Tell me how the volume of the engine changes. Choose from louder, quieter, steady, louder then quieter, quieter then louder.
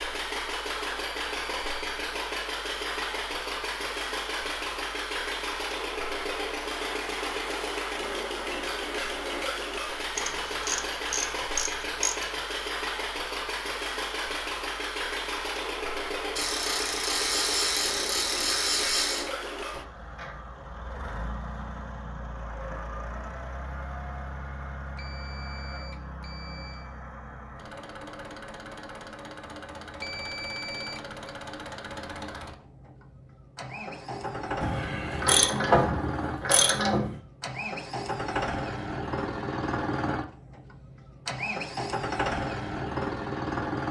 quieter then louder.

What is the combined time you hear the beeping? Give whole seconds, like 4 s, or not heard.
4 s.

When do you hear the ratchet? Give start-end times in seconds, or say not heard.
10.2-12.3, 16.4-19.3, 34.6-37.2.